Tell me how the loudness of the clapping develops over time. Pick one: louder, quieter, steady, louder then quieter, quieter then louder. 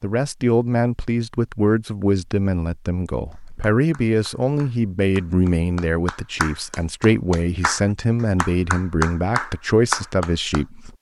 louder.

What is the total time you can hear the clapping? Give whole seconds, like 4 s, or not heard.
7 s.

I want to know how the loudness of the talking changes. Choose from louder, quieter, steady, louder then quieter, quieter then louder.
steady.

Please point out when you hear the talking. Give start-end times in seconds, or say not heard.
0.0-10.9.